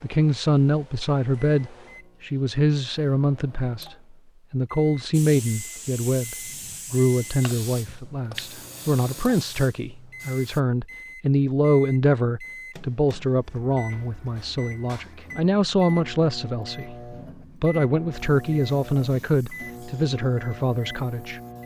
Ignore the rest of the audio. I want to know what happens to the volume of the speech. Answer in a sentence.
The volume of the speech stays about the same.